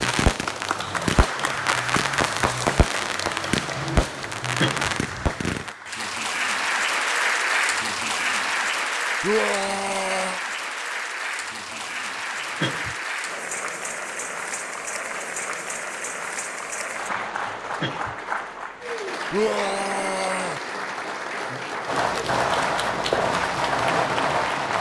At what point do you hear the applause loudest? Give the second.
7 s.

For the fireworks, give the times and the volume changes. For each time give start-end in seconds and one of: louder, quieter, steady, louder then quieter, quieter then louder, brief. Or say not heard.
0.0-5.8 steady
21.9-24.7 brief.